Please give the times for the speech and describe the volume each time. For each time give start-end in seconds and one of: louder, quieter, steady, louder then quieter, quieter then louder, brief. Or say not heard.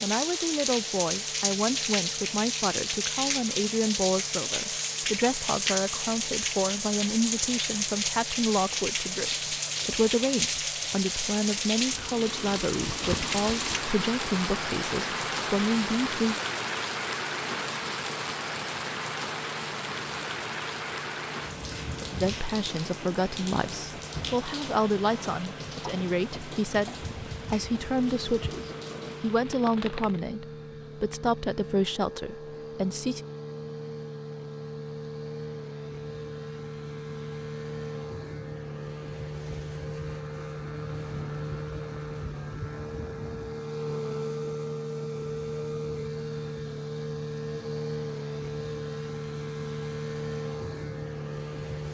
0.0-16.4 steady
22.2-33.2 steady.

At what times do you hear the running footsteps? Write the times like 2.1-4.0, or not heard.
not heard.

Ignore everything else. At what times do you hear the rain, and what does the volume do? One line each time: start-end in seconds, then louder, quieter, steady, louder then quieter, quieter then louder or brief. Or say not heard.
0.0-30.2 quieter.